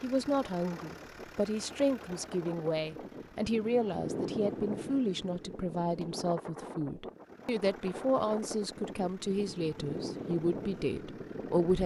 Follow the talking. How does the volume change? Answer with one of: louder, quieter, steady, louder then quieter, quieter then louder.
steady.